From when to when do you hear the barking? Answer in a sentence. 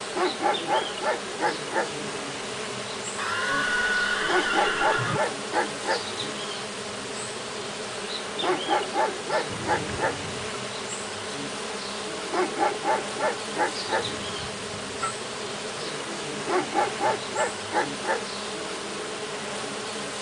The barking can be heard from 0.1 to 1.9 s, from 4.2 to 6.0 s, from 8.4 to 10.2 s, from 12.3 to 14.1 s and from 16.4 to 18.2 s.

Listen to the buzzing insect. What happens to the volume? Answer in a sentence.
The loudness of the buzzing insect stays about the same.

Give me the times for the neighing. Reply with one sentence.
You can hear the neighing from 3.1 to 5.2 s, from 9.4 to 10.6 s and from 13.9 to 15.2 s.